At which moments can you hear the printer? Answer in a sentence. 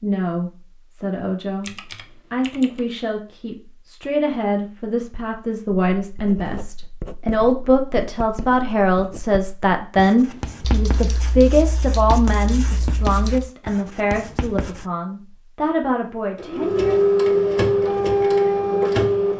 You can hear the printer from 16.4 to 19.3 s.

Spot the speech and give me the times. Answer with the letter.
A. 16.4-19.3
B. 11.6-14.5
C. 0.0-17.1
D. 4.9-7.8
C.